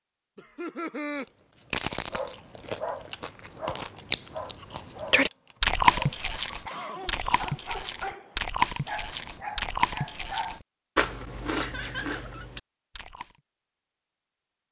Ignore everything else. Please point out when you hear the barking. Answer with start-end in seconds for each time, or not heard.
2.0-10.6.